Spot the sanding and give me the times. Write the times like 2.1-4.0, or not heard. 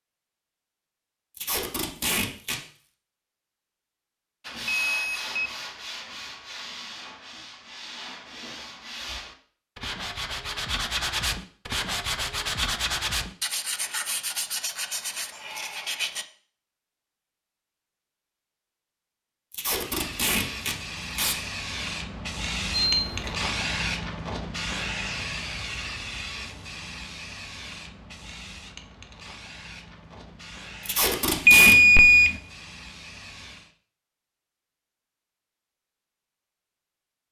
4.4-16.2.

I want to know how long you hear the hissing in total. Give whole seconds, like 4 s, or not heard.
14 s.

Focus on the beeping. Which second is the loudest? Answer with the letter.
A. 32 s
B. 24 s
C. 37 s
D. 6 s
A.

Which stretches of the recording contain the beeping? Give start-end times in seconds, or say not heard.
4.7-5.3, 22.7-23.4, 31.4-32.4.